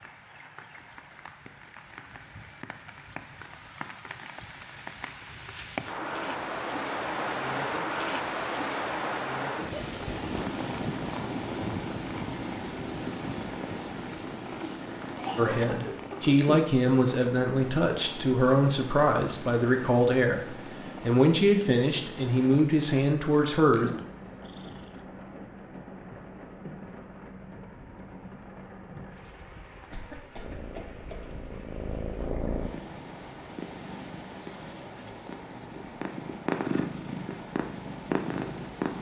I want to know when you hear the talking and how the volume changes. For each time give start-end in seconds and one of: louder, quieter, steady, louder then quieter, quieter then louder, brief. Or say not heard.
15.3-23.9 steady.